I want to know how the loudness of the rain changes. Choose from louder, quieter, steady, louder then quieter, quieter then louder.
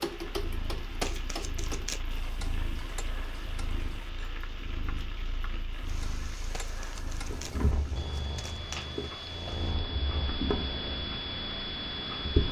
quieter.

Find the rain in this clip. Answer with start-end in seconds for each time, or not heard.
0.0-9.8.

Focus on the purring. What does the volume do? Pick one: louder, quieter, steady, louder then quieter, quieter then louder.
louder.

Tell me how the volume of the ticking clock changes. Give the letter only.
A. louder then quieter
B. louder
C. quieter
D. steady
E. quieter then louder
E.